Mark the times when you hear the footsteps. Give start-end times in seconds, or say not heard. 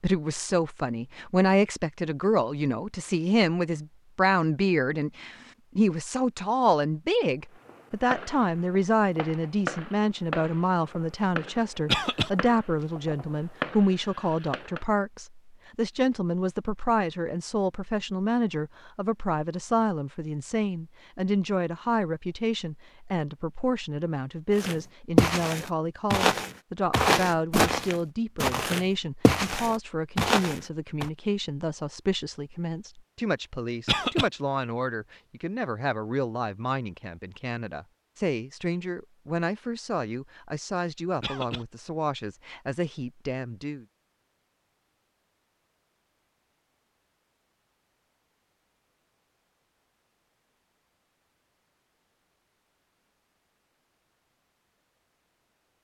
24.6-31.1.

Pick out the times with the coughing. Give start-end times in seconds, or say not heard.
11.8-12.3, 33.9-34.3, 41.2-41.6.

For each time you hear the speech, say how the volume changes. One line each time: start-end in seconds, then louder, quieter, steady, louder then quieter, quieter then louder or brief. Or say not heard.
0.0-43.9 quieter.